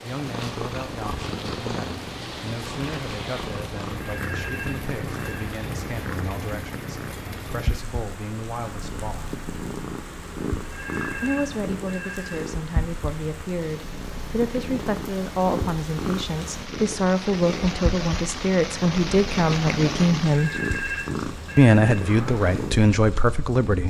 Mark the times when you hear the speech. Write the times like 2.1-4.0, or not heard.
0.0-9.3, 11.2-20.6, 21.6-23.8.